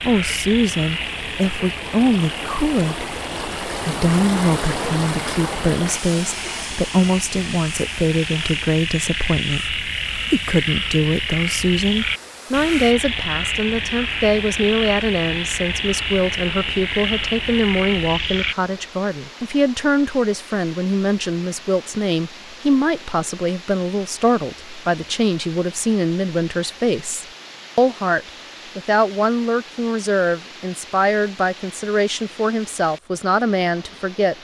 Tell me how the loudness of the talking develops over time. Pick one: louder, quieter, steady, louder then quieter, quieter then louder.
steady.